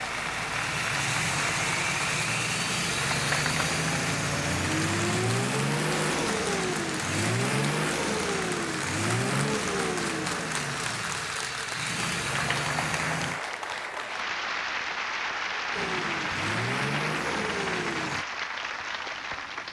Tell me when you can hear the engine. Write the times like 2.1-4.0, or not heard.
0.0-13.4, 15.7-18.2.